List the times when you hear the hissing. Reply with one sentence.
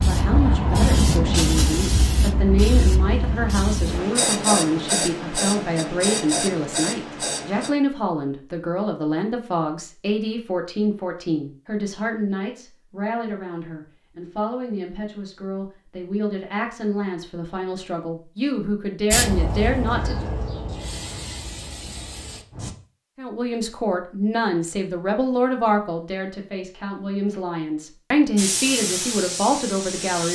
The hissing can be heard from 0.0 to 7.8 s, from 19.1 to 22.8 s and from 28.4 to 30.3 s.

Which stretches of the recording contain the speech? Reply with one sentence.
You can hear the speech from 0.1 to 20.3 s and from 23.1 to 30.3 s.